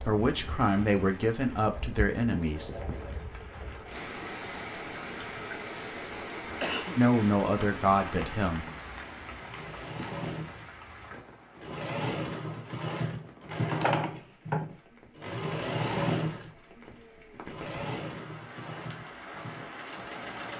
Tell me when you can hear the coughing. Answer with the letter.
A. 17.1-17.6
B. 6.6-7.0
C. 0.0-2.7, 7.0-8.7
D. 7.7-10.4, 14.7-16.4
B.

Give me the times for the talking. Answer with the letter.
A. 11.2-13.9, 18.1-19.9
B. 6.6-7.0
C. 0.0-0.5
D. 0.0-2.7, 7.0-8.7
D.